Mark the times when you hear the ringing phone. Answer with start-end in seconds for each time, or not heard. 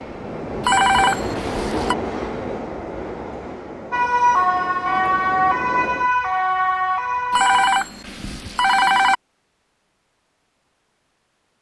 0.6-1.9, 7.3-9.2.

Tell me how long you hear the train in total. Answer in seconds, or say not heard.
6 s.